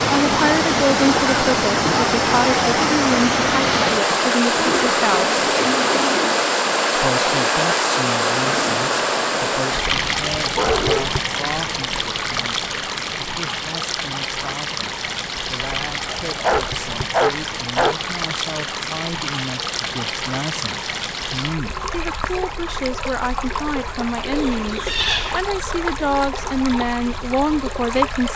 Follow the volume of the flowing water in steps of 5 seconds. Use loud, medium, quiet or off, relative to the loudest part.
loud, loud, medium, medium, medium, medium.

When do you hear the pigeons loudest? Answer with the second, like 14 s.
25 s.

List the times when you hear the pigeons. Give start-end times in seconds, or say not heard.
4.5-6.5, 24.2-25.4.